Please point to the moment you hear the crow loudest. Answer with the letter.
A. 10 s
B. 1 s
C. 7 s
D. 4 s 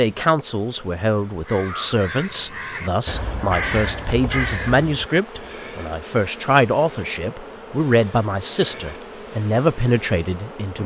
D.